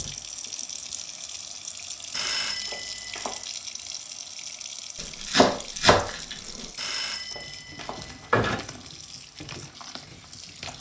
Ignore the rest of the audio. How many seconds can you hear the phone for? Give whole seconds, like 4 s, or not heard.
3 s.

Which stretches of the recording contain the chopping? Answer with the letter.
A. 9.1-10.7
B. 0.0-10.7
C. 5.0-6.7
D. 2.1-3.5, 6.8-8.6
C.